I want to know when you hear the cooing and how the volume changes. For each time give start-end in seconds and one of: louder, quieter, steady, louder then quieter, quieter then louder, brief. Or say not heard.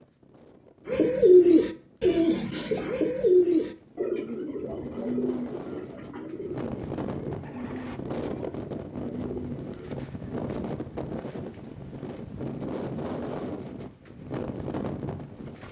0.8-9.9 quieter.